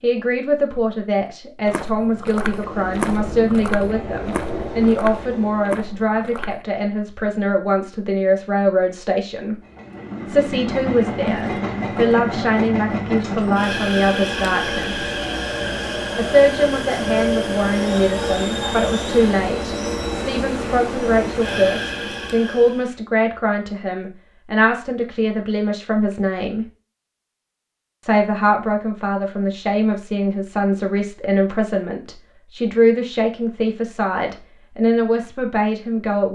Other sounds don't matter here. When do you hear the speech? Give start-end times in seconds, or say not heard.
0.0-9.6, 10.2-15.1, 16.1-26.6, 28.0-36.3.